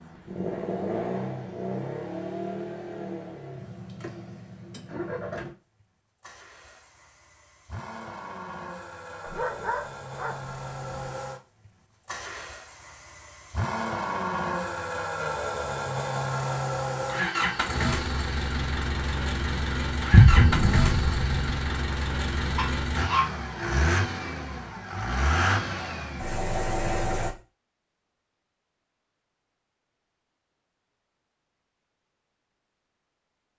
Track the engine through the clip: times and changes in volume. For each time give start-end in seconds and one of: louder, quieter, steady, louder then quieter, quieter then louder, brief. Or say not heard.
0.0-27.3 quieter then louder.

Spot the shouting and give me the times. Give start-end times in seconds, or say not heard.
not heard.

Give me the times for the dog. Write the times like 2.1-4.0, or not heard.
9.2-11.1, 22.6-23.2.